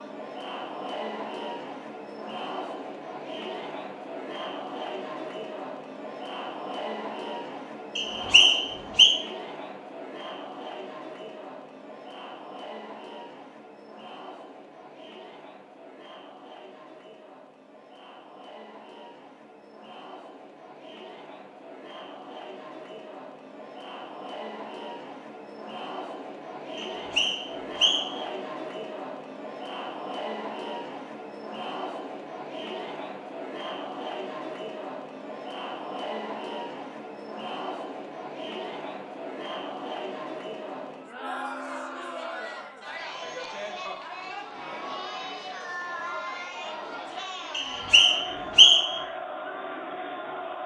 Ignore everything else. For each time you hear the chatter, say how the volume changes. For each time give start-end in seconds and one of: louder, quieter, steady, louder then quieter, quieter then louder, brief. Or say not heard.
0.0-50.6 quieter then louder.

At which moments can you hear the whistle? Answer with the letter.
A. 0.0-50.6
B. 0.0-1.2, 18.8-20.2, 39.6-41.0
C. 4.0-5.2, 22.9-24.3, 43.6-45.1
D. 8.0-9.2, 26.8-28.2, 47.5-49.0
D.